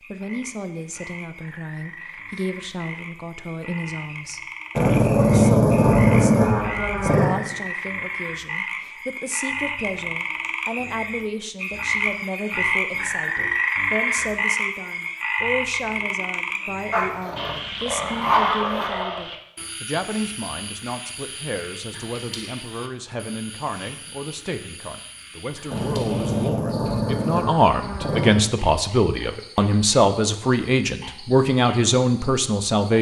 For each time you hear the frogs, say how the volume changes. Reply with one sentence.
You can hear the frogs from 0.0 to 32.9 s, getting louder then quieter.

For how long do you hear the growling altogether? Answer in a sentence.
The growling can be heard for 7 seconds in total.